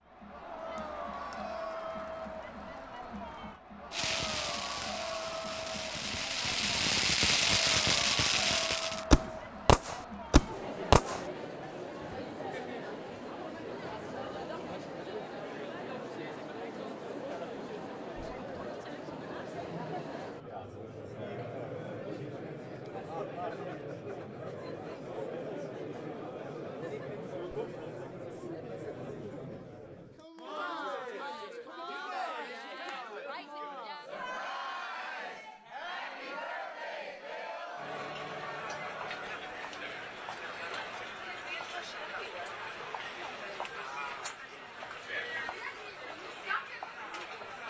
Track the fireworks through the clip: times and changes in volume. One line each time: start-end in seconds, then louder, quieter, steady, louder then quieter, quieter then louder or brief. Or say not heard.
3.9-11.2 louder.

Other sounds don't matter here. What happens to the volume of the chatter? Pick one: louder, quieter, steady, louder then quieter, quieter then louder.
steady.